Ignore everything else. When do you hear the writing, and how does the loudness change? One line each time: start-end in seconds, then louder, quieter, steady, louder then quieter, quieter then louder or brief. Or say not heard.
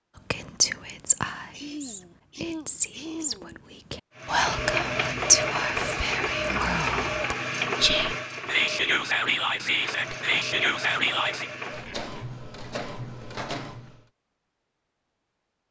not heard.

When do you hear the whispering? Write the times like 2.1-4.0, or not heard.
0.3-11.4.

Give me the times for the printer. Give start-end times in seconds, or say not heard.
4.2-14.1.